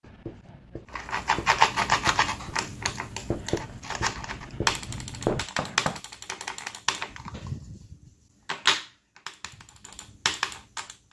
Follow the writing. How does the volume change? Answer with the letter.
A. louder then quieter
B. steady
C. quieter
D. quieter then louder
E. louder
E.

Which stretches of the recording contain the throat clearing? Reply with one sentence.
You can't hear the throat clearing here.